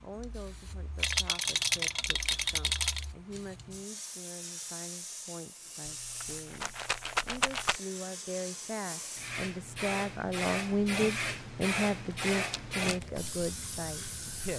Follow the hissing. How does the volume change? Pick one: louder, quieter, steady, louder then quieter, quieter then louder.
louder.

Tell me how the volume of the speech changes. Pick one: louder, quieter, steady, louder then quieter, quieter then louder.
louder.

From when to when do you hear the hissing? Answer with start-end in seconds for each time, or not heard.
0.0-14.5.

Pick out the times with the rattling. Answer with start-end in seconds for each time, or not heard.
1.0-3.0, 5.8-7.8, 12.5-12.9.